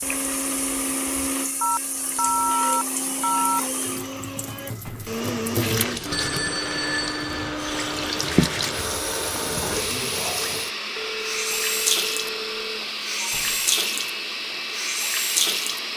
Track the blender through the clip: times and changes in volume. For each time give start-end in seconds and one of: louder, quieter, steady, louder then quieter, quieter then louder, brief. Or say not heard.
0.0-15.9 steady.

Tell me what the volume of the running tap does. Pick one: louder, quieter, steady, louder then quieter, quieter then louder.
louder.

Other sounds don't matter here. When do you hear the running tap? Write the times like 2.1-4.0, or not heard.
0.0-15.9.